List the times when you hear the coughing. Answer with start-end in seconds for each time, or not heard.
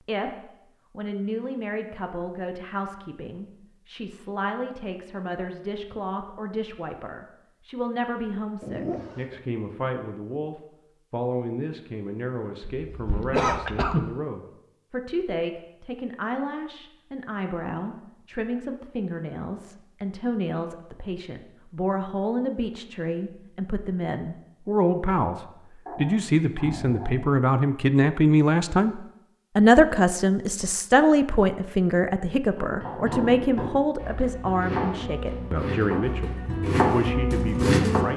12.7-14.1.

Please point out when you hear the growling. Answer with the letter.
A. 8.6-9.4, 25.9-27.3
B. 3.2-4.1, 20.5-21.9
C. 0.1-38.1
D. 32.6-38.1
A.